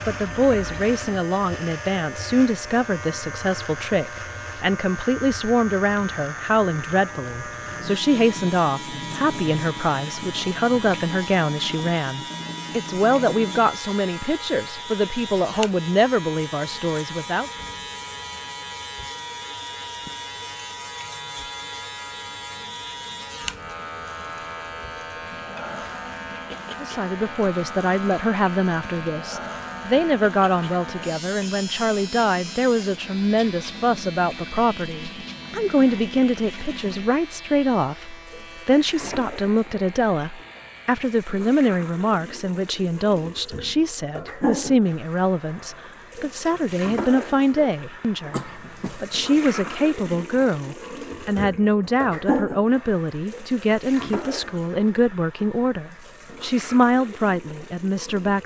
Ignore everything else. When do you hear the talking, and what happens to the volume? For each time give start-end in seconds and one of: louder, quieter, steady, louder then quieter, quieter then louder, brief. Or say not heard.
0.1-17.5 steady
26.8-58.4 steady.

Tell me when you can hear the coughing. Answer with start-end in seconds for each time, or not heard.
48.3-49.0.